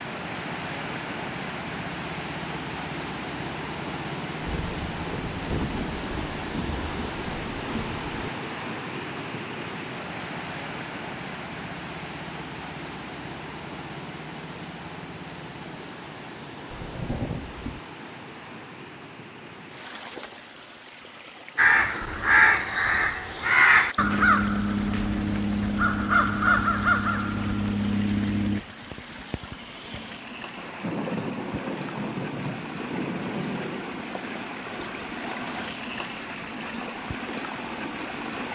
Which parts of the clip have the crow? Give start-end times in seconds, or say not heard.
21.6-28.6.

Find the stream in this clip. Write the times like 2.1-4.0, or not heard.
0.0-38.4.